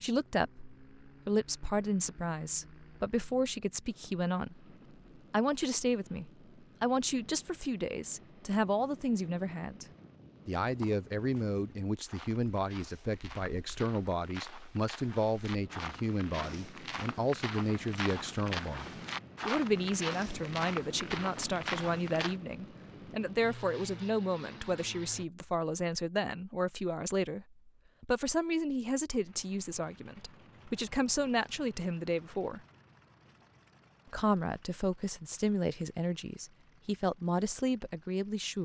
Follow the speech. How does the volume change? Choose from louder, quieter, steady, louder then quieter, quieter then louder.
steady.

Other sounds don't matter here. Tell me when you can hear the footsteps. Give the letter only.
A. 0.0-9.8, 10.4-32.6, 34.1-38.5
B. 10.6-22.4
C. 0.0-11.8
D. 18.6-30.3
B.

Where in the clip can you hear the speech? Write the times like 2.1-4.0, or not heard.
0.0-9.8, 10.4-32.6, 34.1-38.5.